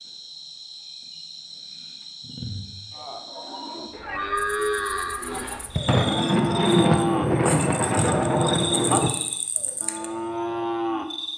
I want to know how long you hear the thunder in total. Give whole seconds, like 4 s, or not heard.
3 s.